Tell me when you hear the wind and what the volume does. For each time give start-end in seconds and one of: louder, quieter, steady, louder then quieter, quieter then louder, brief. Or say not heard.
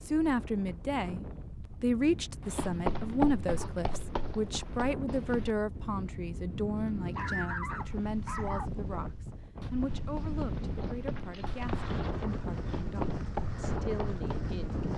0.0-14.9 louder.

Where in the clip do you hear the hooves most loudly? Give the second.
3 s.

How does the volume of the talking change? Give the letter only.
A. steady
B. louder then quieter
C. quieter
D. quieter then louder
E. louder
C.